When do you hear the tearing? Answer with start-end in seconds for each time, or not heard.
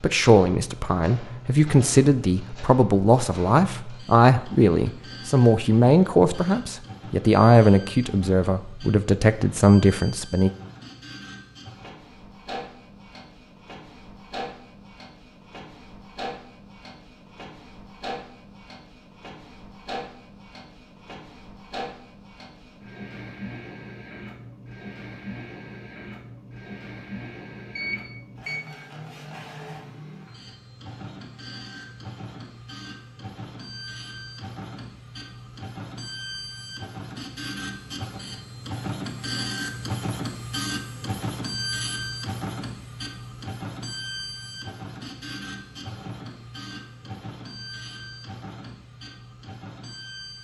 not heard.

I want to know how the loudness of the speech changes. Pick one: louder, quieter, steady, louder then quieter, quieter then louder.
steady.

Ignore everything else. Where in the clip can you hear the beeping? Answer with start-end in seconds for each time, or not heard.
27.8-28.6.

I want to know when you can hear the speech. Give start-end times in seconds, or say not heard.
0.0-10.5.